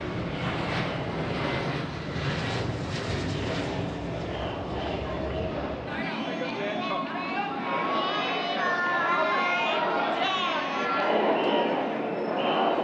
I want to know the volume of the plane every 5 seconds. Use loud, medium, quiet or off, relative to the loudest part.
loud, medium, medium.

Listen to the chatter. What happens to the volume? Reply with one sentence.
The volume of the chatter goes up.